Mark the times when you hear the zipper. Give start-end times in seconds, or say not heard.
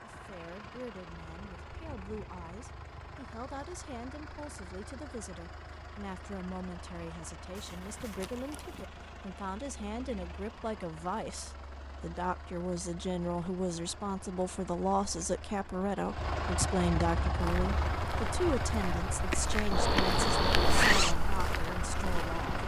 7.5-8.8, 19.7-21.1.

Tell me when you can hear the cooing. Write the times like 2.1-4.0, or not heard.
not heard.